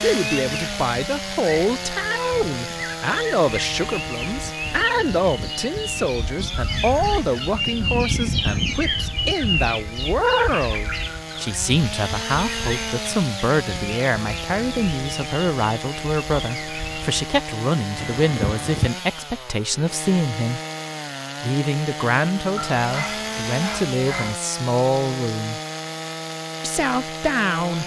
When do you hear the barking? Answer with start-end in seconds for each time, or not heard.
22.6-24.4.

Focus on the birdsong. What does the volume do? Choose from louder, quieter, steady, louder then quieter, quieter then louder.
louder then quieter.